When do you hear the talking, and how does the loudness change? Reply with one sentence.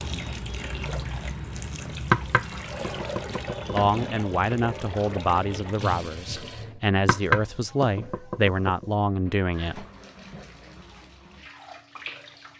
You can hear the talking from 3.7 to 9.8 s, at a steady volume.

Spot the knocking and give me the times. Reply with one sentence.
The knocking can be heard from 2.1 to 3.8 s and from 7.0 to 8.8 s.